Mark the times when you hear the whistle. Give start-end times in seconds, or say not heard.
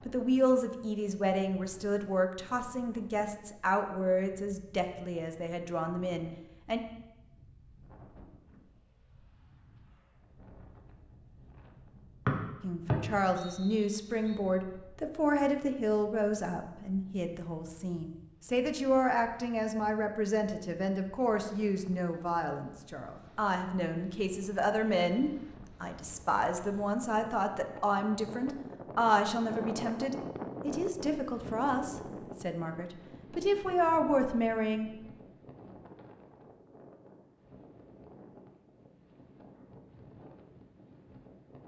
12.2-14.4.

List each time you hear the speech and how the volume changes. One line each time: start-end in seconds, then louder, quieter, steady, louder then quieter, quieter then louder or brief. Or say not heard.
0.0-6.8 quieter
12.6-34.9 steady.